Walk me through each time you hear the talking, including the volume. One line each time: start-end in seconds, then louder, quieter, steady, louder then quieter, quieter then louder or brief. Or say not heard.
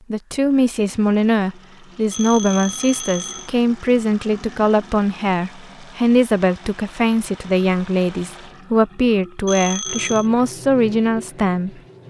0.1-11.7 steady.